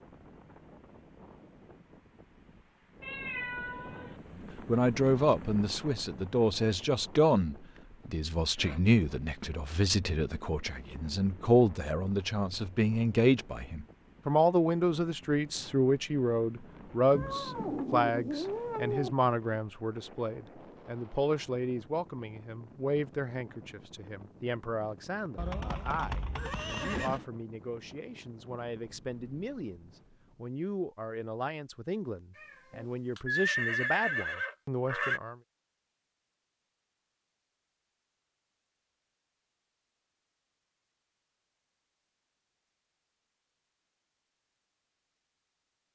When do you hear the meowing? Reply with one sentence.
The meowing can be heard from 3.0 to 4.2 s, from 17.1 to 19.1 s and from 32.4 to 33.2 s.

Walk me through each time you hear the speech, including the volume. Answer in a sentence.
The speech can be heard from 4.3 to 35.4 s, getting quieter.